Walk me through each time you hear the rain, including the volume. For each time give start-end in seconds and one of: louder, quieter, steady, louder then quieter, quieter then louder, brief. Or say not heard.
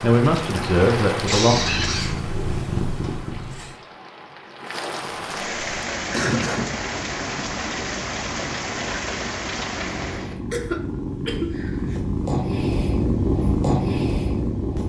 0.0-10.3 quieter then louder.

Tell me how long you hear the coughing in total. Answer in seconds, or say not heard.
3 s.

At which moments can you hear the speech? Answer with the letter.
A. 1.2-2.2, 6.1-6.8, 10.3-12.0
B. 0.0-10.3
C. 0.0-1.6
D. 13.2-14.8
C.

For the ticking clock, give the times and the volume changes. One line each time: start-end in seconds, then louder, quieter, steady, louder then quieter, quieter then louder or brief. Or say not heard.
not heard.